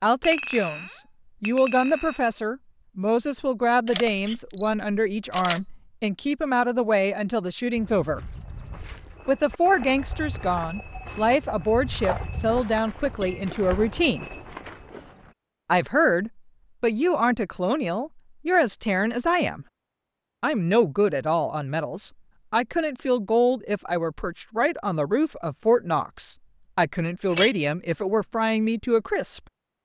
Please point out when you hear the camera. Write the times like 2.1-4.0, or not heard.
3.9-5.8.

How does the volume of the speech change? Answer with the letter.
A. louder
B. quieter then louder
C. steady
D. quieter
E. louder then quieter
C.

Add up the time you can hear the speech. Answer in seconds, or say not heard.
26 s.